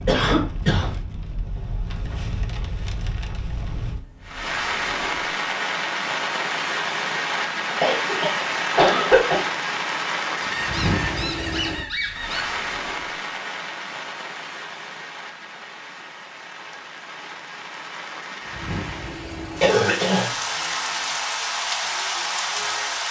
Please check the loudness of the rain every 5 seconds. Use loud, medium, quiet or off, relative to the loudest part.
medium, loud, loud, medium, loud.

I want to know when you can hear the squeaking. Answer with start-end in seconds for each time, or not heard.
10.4-12.4.